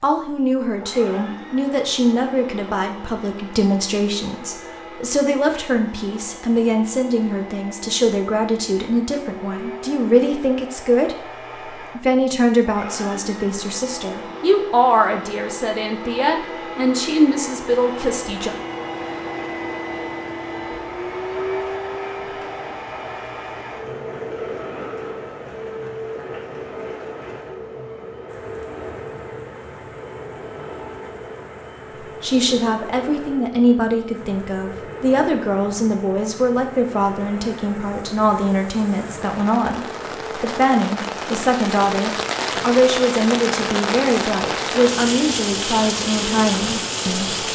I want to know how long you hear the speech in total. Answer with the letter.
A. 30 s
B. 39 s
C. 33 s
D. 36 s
C.